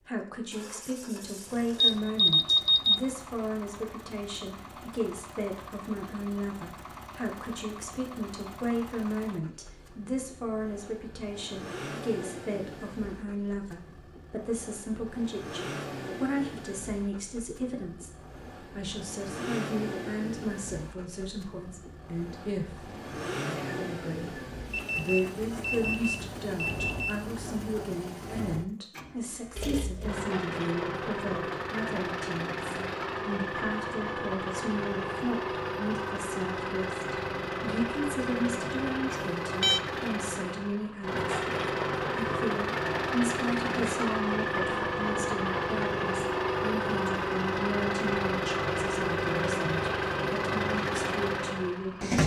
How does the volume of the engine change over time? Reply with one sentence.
The loudness of the engine goes up.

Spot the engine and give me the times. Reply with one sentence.
The engine can be heard from 0.0 to 52.2 s.